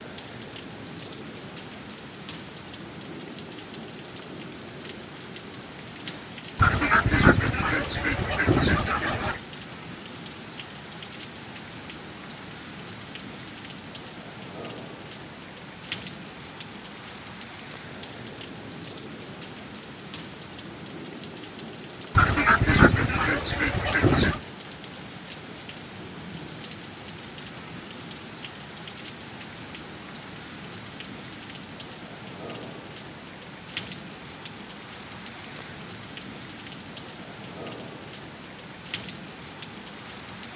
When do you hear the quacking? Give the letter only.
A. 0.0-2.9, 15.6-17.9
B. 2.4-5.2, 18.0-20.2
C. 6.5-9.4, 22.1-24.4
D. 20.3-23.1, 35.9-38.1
C.